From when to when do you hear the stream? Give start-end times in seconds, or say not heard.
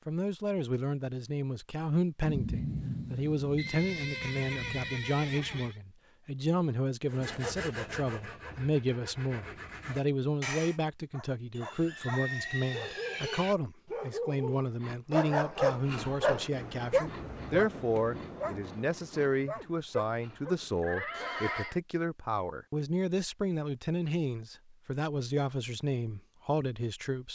not heard.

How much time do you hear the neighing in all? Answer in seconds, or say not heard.
5 s.